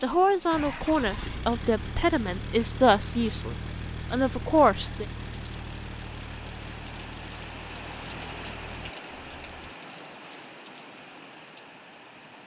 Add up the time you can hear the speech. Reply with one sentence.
You can hear the speech for 5 seconds altogether.